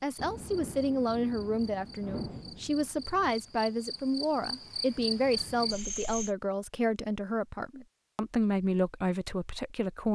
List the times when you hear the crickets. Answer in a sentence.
You can hear the crickets from 0.0 to 6.3 s.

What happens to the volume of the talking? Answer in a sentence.
The loudness of the talking stays about the same.